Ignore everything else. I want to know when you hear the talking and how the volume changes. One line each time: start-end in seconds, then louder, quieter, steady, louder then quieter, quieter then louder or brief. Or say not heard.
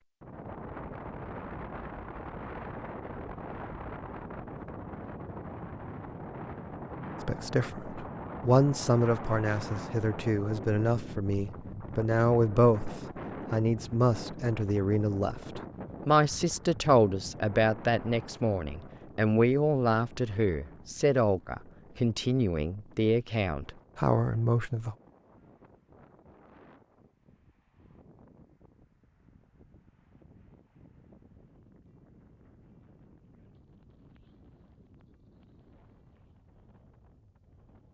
7.2-24.9 steady.